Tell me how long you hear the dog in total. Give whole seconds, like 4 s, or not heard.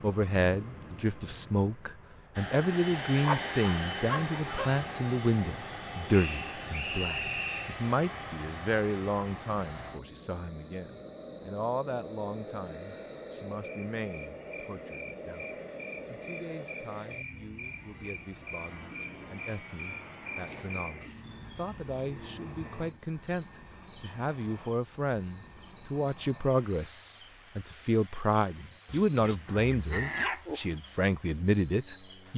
3 s.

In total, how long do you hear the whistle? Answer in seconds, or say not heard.
2 s.